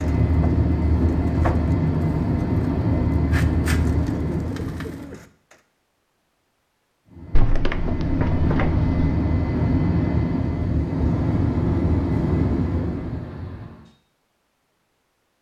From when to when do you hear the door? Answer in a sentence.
The door can be heard from 7.3 to 8.9 s.